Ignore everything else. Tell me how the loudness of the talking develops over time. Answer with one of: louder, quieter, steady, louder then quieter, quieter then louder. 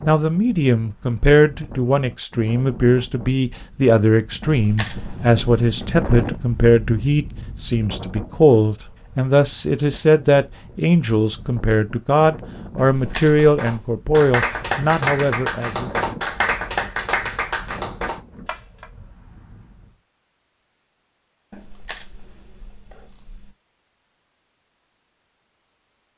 steady.